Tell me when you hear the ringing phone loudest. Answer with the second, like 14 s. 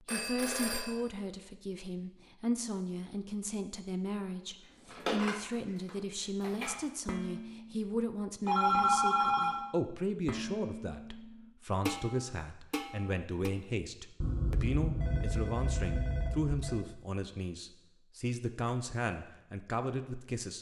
9 s.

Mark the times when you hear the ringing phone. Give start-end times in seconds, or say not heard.
0.1-0.9, 8.4-9.6, 14.2-16.8.